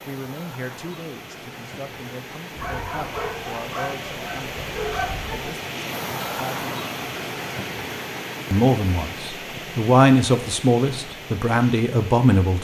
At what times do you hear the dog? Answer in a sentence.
You can hear the dog from 2.5 to 5.5 s.